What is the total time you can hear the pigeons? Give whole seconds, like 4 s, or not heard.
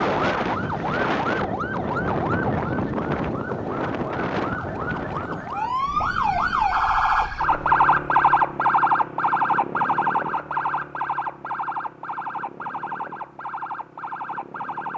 not heard.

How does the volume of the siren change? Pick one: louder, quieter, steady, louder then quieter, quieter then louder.
louder then quieter.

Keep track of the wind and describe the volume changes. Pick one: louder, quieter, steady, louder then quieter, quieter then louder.
quieter.